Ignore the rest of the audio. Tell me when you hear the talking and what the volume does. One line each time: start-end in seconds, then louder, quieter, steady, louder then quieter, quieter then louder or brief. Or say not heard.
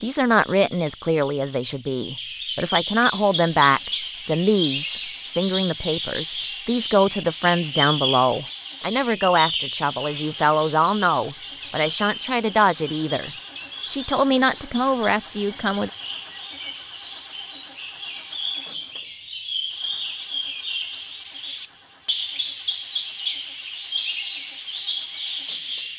0.0-15.9 steady.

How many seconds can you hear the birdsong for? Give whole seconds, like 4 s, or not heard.
26 s.